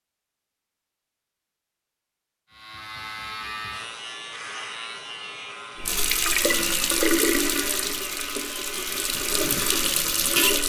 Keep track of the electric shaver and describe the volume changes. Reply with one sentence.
The volume of the electric shaver stays about the same.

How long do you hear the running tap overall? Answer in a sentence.
You can hear the running tap for 5 seconds altogether.